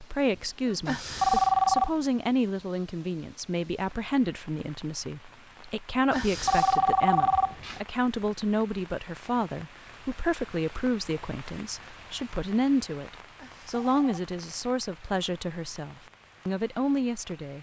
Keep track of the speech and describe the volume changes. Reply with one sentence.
The loudness of the speech stays about the same.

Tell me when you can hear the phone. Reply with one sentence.
The phone can be heard from 0.8 to 1.9 s, from 6.1 to 7.8 s and from 13.3 to 14.2 s.